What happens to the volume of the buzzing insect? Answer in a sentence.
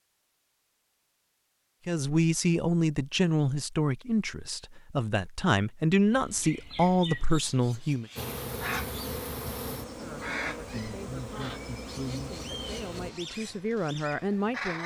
The volume of the buzzing insect stays about the same.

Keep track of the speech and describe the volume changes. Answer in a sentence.
The loudness of the speech goes down, then up.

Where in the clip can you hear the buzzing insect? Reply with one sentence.
The buzzing insect can be heard from 8.2 to 13.1 s.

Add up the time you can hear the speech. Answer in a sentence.
The speech can be heard for 11 seconds in total.